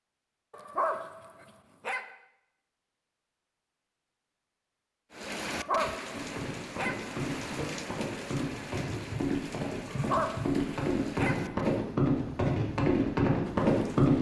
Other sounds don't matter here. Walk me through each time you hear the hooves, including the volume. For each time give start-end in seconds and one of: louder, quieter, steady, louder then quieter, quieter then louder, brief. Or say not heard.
6.1-14.1 louder.